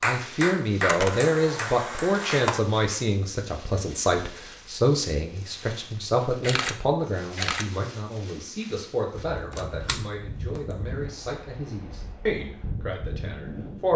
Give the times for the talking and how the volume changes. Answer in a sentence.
You can hear the talking from 0.0 to 13.9 s, getting quieter.